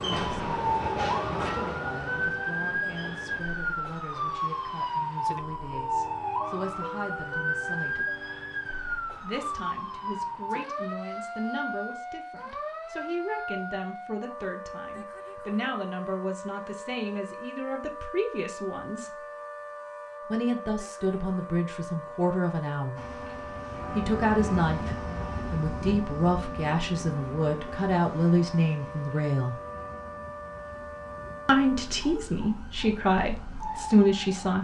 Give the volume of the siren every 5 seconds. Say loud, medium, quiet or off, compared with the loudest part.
loud, loud, medium, medium, medium, medium, medium.